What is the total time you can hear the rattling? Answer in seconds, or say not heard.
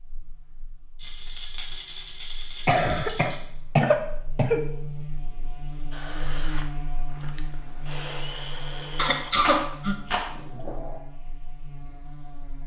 3 s.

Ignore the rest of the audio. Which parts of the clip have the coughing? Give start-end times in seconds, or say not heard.
2.6-4.6, 8.9-11.0.